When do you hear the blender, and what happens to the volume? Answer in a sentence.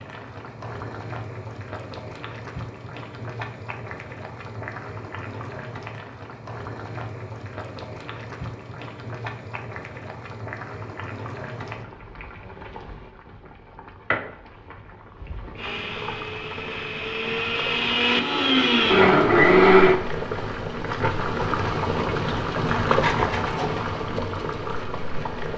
You can hear the blender from 15.6 to 20.0 s, getting louder.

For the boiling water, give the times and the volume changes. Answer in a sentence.
You can hear the boiling water from 0.0 to 25.5 s, getting louder.